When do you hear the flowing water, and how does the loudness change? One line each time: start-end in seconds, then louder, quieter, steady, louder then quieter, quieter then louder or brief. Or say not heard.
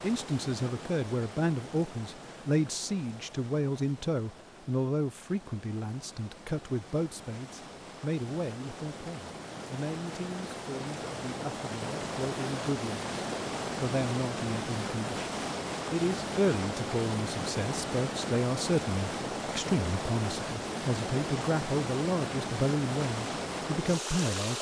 0.0-24.5 louder.